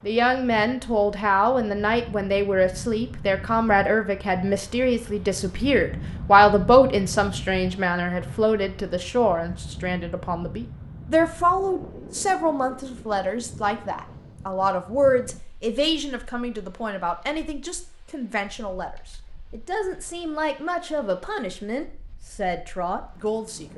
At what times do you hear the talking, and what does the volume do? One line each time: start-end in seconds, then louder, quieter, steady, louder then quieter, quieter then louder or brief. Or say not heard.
0.0-23.7 quieter.